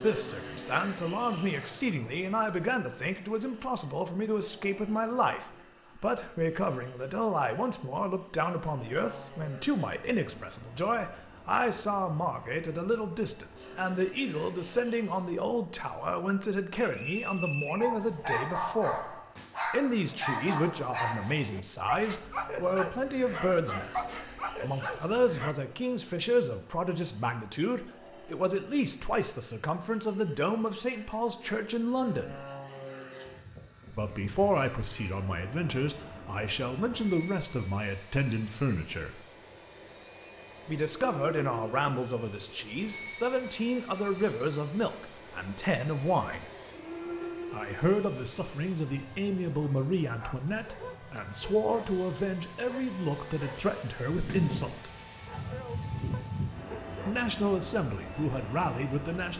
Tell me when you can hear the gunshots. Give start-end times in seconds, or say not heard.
not heard.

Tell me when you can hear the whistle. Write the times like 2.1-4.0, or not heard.
16.8-17.9.